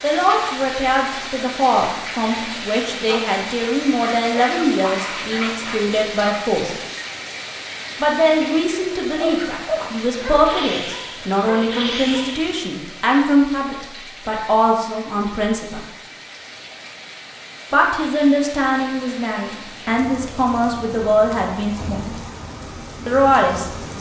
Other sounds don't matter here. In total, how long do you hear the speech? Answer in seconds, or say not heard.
20 s.